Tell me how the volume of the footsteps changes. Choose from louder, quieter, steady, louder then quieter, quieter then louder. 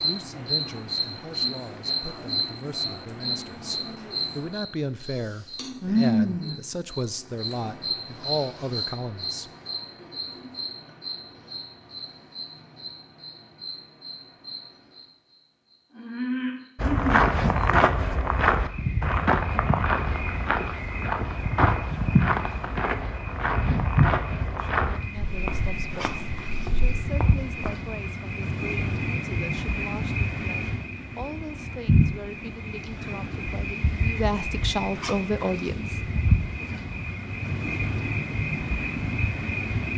quieter.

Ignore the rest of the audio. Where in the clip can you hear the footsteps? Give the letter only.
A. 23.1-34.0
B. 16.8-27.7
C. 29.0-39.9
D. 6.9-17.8
B.